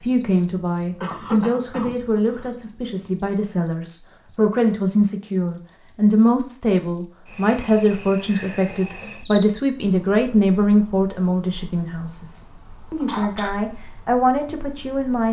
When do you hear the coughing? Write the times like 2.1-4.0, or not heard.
1.0-2.5, 13.0-13.6.